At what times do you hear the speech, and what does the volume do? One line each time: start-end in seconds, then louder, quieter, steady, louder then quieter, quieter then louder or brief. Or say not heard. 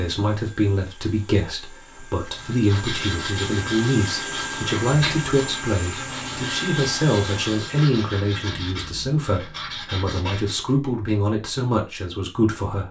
0.0-12.8 steady.